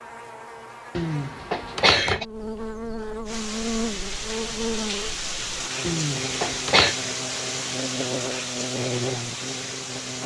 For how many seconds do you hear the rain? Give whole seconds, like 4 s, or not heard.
7 s.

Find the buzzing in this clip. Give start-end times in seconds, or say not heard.
0.0-10.2.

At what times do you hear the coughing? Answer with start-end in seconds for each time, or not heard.
0.9-2.2, 5.8-7.0.